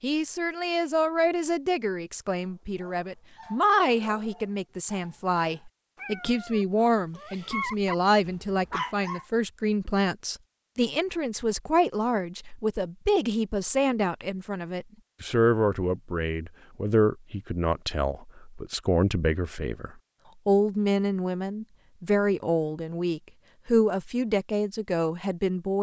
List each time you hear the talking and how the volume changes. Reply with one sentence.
You can hear the talking from 0.0 to 25.7 s, at a steady volume.